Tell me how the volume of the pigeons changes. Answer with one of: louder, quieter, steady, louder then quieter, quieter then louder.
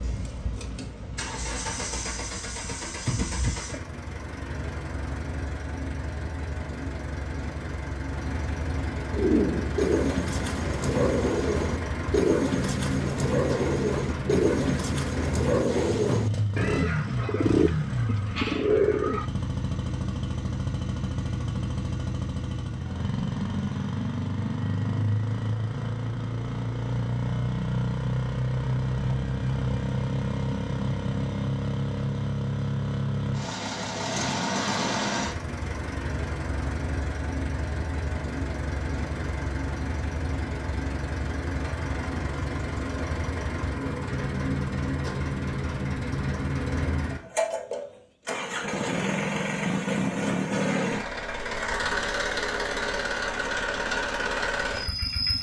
steady.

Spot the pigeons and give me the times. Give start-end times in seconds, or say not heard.
9.1-19.2.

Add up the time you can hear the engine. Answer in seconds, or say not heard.
55 s.